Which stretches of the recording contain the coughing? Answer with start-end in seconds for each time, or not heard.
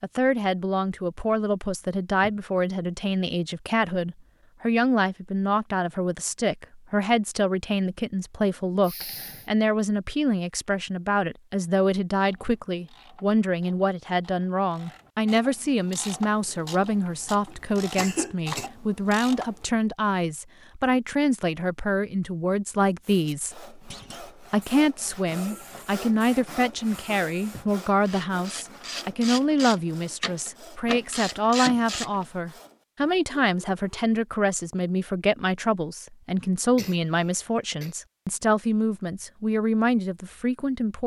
8.8-9.5, 17.1-18.7, 36.8-38.0.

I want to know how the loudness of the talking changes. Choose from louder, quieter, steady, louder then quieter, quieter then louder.
steady.